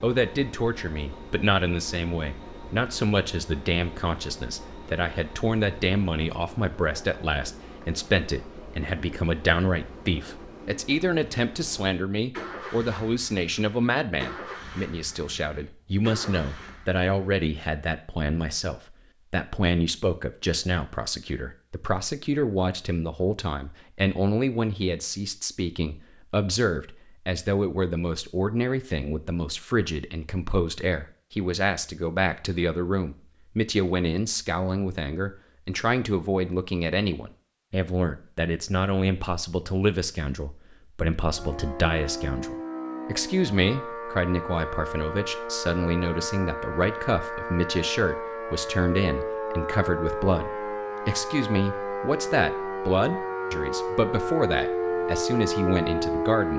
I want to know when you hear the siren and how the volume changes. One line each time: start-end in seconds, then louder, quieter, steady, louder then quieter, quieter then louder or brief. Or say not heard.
41.2-56.5 louder.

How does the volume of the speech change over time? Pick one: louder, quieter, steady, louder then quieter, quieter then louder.
steady.